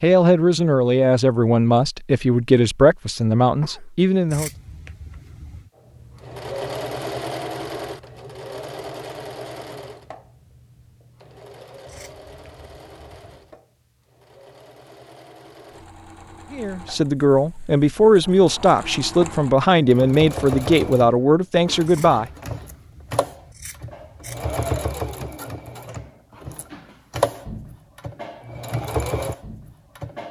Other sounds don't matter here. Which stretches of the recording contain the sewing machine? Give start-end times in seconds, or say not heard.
5.8-30.2.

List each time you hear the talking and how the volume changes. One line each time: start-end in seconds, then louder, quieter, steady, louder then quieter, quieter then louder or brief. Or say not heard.
0.0-4.5 steady
16.5-22.3 steady.